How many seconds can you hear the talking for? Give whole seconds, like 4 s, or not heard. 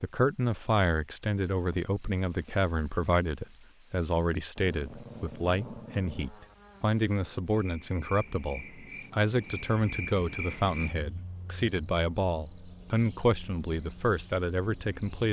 15 s.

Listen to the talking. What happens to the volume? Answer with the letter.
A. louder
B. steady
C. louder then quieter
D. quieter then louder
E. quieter
B.